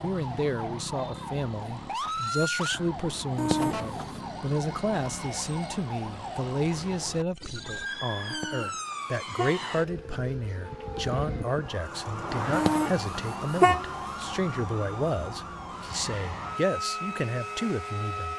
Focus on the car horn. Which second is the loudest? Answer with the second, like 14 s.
14 s.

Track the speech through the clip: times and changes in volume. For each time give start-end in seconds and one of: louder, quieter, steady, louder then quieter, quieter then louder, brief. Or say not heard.
0.0-18.3 steady.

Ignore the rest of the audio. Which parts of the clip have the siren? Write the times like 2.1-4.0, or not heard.
0.0-18.3.